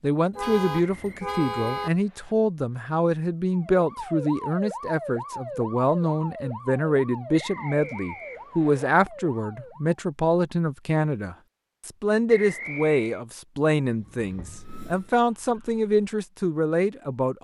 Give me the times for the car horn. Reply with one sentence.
The car horn can be heard from 0.3 to 1.9 s and from 14.2 to 14.7 s.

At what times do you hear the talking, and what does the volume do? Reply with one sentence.
The talking can be heard from 0.0 to 17.3 s, at a steady volume.